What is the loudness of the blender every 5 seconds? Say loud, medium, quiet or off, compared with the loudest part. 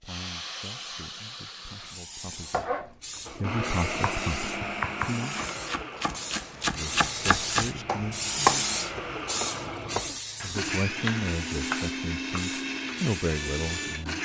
loud, medium, loud.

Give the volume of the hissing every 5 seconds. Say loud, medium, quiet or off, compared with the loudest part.
medium, loud, medium.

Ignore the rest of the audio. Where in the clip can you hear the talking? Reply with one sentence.
The talking can be heard from 0.0 to 5.4 s, from 6.8 to 8.7 s and from 10.4 to 14.1 s.